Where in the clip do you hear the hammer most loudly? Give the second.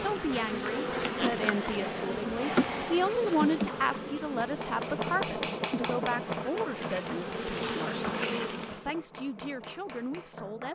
5 s.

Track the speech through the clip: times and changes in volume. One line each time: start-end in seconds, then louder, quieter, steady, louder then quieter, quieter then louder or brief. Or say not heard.
0.0-10.7 louder then quieter.